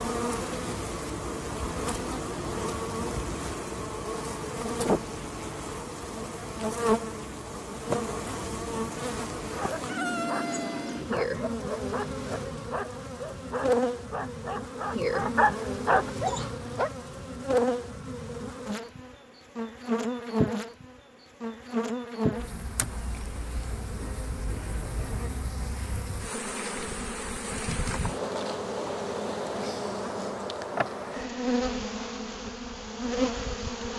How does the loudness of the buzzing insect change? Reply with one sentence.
The loudness of the buzzing insect stays about the same.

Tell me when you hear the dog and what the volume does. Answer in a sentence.
The dog can be heard from 9.6 to 16.9 s, getting louder.